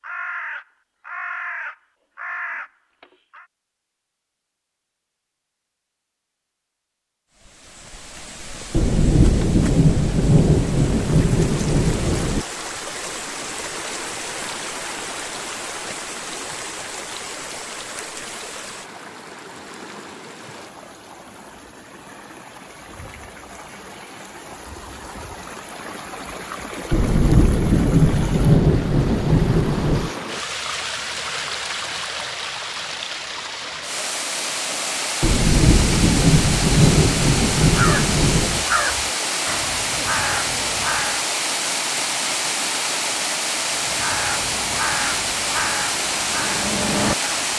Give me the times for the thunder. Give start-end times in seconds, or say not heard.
8.7-12.4, 26.9-30.1, 35.2-38.6.